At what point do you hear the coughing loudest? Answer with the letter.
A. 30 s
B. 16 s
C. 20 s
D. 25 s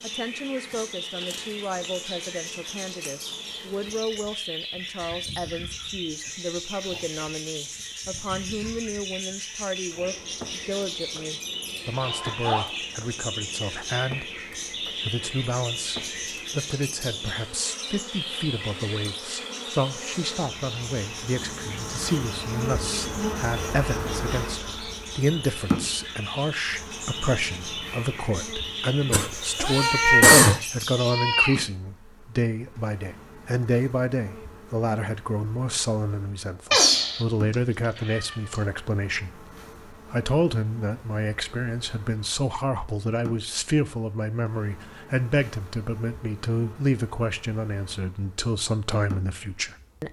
A.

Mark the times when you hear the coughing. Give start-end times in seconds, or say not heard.
29.1-30.6.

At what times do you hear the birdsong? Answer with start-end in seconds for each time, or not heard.
0.0-31.1.